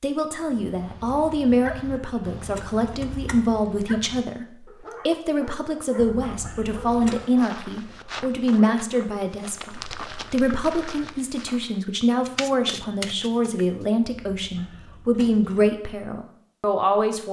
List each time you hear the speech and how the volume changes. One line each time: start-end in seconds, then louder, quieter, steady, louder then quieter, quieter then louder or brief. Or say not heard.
0.0-17.2 steady.